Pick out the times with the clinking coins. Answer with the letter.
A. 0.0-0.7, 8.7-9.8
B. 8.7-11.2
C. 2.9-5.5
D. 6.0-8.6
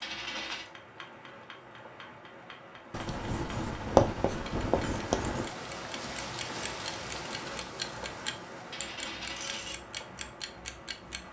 A.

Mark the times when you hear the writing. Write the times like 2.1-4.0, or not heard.
2.9-5.5.